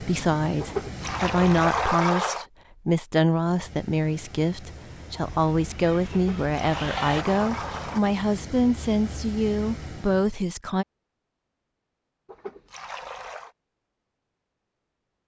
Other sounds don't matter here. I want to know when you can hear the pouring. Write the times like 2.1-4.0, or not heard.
0.6-2.5, 6.1-8.0, 12.2-13.5.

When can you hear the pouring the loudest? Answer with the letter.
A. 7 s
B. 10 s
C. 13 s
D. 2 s
D.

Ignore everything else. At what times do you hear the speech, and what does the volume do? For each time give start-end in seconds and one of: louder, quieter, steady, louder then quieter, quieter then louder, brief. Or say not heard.
0.0-10.8 steady.